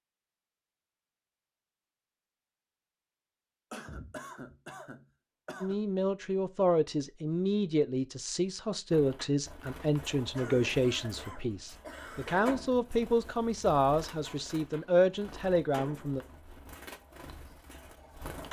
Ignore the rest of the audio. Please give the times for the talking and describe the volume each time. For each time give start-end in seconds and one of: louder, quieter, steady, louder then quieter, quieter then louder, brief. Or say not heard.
5.6-16.2 steady.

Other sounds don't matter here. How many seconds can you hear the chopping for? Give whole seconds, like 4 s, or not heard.
not heard.